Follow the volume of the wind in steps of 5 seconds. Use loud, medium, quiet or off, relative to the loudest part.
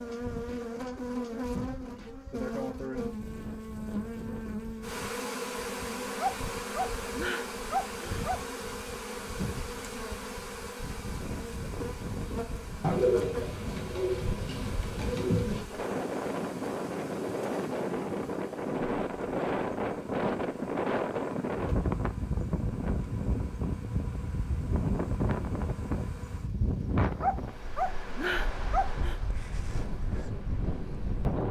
quiet, quiet, medium, loud, loud, loud, loud.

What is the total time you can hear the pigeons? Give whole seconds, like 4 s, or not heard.
3 s.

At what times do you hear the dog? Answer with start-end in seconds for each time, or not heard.
6.2-8.4, 27.2-29.1.